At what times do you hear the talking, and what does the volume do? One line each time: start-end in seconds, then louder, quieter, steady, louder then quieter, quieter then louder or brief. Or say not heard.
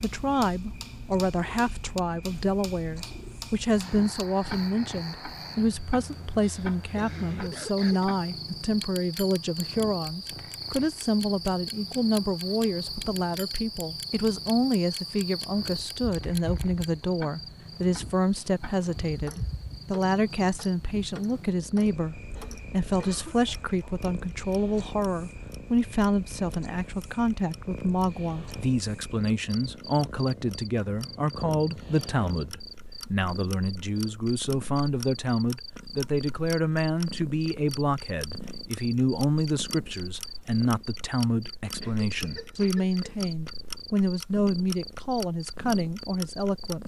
0.0-46.8 steady.